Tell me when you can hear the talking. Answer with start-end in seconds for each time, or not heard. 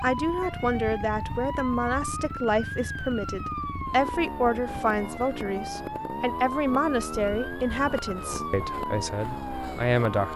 0.0-10.3.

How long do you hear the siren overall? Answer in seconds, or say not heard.
10 s.